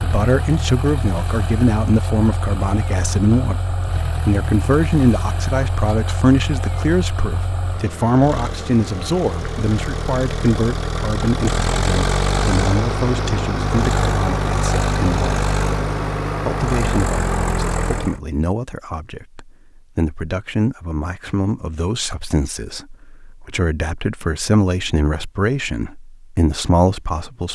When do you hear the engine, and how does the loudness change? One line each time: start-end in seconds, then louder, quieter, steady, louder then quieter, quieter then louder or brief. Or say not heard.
0.0-18.2 louder.